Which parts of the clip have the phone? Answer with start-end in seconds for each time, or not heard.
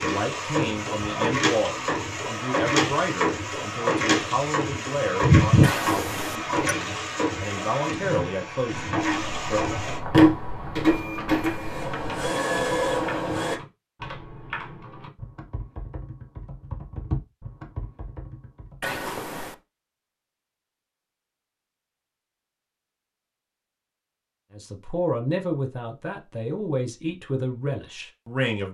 5.6-6.5, 18.8-19.6.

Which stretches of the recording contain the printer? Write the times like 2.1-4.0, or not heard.
0.0-13.6.